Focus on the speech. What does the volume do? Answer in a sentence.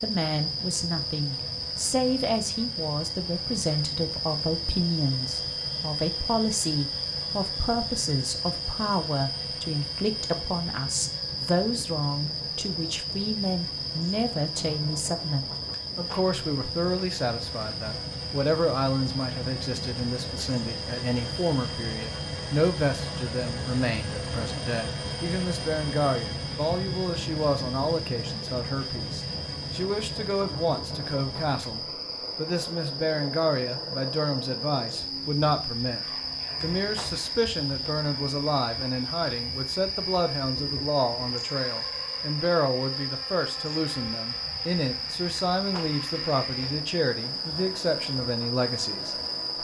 The loudness of the speech stays about the same.